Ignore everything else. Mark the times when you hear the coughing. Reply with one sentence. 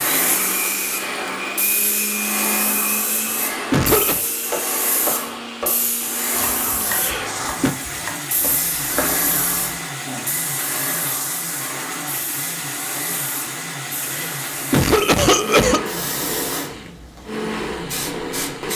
You can hear the coughing from 2.9 to 4.2 s, from 6.8 to 7.8 s and from 13.9 to 15.9 s.